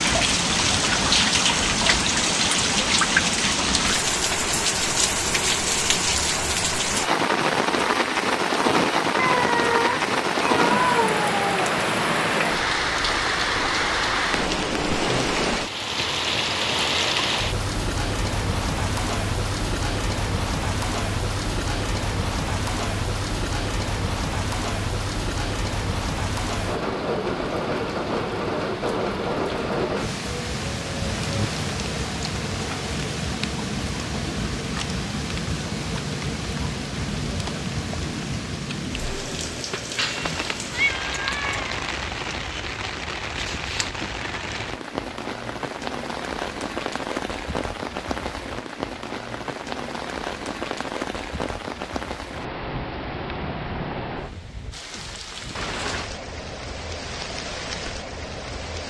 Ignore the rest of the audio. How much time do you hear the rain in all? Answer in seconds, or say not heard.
59 s.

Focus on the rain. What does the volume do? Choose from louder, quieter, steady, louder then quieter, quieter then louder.
quieter.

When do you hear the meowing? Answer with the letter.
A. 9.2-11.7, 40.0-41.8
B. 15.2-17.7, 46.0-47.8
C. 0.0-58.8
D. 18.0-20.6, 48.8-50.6
A.